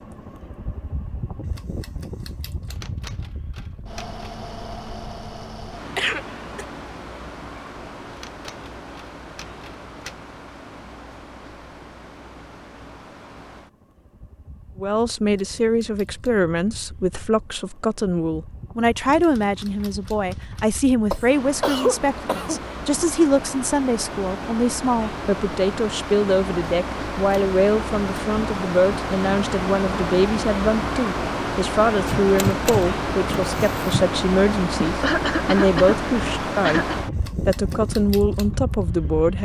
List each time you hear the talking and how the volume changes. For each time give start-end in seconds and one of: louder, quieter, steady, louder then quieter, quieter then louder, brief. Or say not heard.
14.8-39.4 steady.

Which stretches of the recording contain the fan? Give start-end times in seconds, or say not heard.
0.0-39.4.